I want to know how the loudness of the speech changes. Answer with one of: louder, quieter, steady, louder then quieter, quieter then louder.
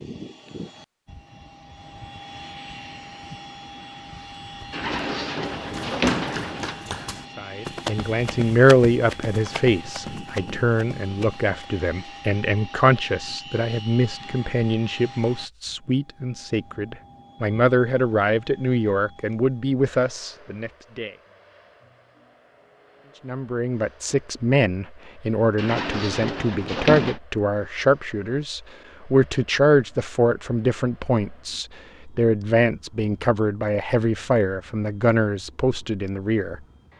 steady.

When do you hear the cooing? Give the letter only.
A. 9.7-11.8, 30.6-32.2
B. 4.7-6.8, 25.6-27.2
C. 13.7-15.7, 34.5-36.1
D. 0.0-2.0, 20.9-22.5
B.